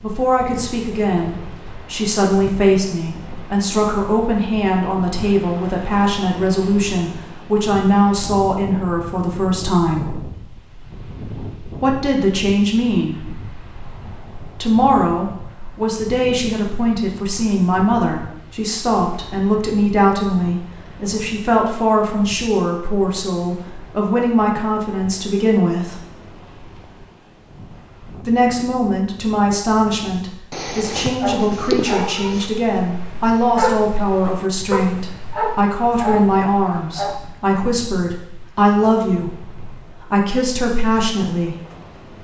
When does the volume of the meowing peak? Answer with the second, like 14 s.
32 s.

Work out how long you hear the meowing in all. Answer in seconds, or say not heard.
2 s.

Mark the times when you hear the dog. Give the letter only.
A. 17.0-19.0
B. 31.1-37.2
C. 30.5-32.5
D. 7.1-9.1
B.